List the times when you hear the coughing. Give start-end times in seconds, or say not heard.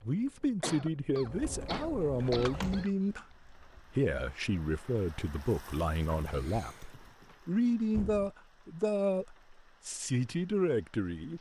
0.6-2.9, 6.2-7.3.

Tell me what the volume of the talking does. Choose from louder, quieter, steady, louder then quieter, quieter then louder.
steady.